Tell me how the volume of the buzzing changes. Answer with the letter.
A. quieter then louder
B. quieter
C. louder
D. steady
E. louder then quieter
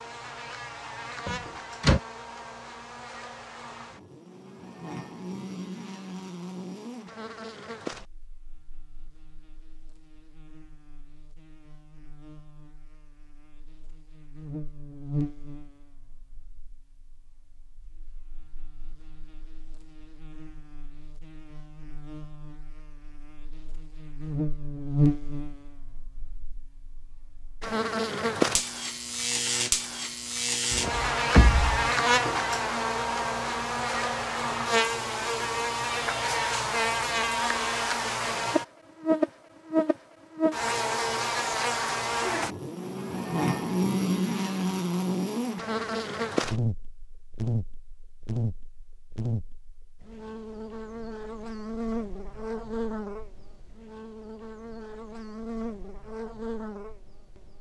E.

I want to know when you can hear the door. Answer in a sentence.
The door can be heard from 1.2 to 2.0 s and from 30.7 to 31.8 s.